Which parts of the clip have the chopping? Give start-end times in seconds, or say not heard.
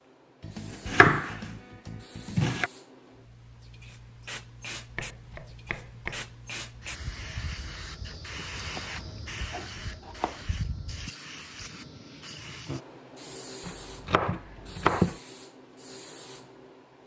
0.4-2.7, 5.0-6.2, 8.7-10.4, 13.6-15.2.